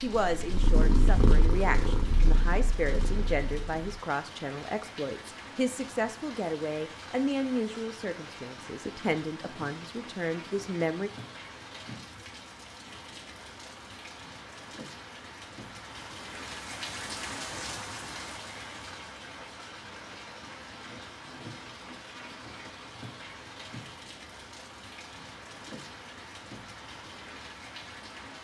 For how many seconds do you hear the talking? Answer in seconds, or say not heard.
11 s.